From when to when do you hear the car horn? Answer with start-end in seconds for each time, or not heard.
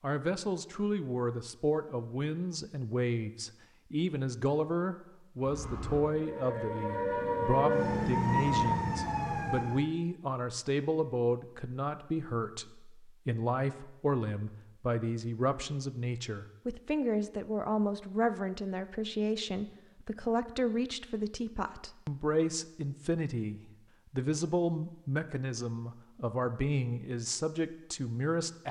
not heard.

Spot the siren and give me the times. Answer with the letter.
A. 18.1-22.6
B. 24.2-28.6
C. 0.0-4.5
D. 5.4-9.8
D.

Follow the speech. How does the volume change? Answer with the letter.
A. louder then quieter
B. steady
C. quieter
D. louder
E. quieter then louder
B.